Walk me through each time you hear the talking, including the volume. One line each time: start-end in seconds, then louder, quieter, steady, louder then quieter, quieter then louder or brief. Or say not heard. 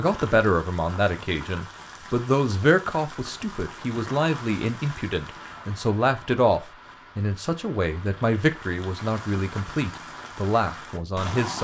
0.0-11.5 steady.